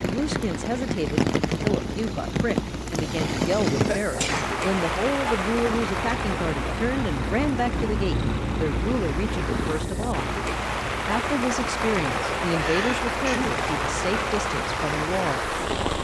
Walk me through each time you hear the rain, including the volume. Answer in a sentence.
The rain can be heard from 0.0 to 15.9 s, getting quieter then louder.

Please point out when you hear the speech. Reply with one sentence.
You can hear the speech from 0.0 to 10.3 s and from 11.1 to 15.4 s.